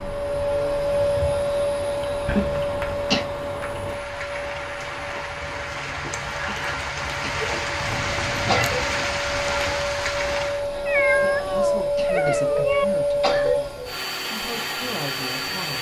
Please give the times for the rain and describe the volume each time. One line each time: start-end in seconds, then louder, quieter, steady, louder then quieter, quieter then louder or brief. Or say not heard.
0.0-10.7 louder.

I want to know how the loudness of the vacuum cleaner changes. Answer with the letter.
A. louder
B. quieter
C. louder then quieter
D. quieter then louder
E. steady
D.